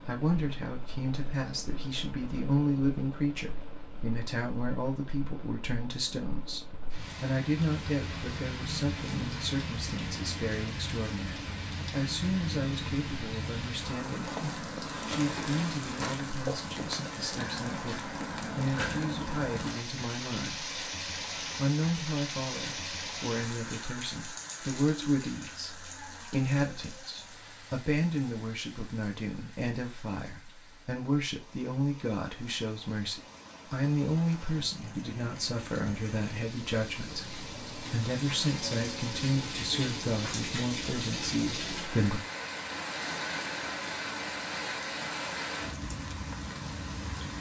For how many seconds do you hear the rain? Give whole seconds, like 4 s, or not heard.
47 s.